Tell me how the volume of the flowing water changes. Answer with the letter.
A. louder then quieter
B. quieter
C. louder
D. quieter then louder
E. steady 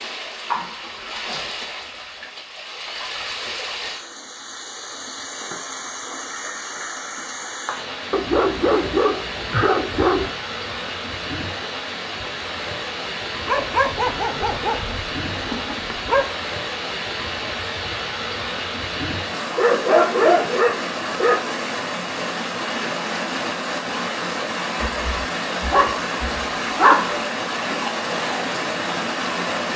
C.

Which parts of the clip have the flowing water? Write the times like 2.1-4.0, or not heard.
0.0-29.7.